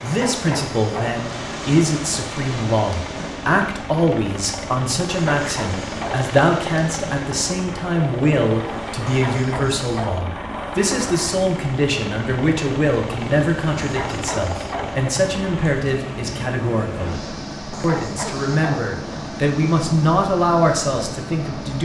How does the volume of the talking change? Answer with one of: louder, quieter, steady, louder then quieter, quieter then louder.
steady.